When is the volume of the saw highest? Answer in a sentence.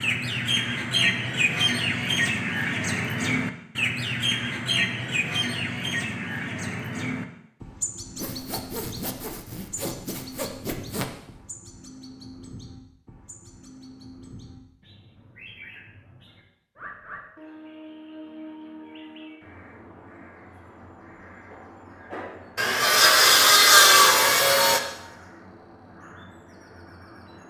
The loudest moment of the saw is at 24 seconds.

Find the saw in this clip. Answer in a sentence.
You can hear the saw from 8.2 to 11.1 s and from 22.6 to 24.8 s.